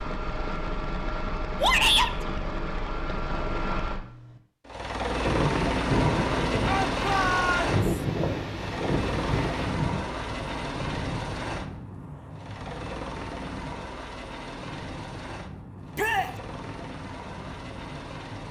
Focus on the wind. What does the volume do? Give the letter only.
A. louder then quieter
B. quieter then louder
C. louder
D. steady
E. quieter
E.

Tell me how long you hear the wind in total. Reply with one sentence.
You can hear the wind for 13 seconds altogether.